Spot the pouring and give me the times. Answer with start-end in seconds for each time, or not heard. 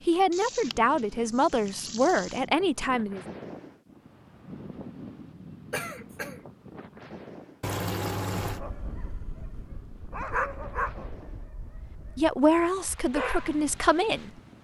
0.3-2.5, 7.6-8.6.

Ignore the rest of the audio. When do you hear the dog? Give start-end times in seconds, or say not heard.
8.4-14.3.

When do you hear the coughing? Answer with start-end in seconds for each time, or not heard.
5.7-6.4.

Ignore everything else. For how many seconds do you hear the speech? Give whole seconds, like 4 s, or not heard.
5 s.